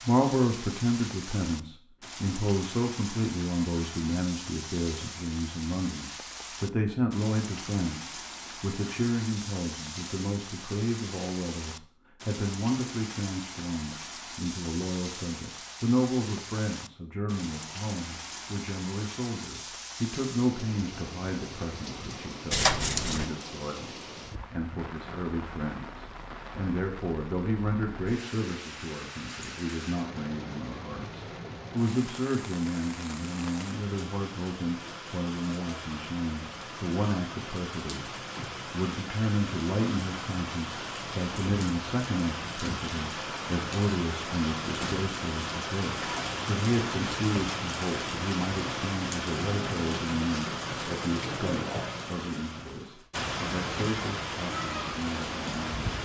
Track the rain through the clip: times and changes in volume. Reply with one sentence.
The rain can be heard from 0.0 to 56.0 s, getting louder.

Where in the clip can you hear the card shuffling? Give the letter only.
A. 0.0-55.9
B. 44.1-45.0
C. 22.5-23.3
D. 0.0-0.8
C.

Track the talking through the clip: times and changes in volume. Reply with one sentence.
You can hear the talking from 0.0 to 55.9 s, at a steady volume.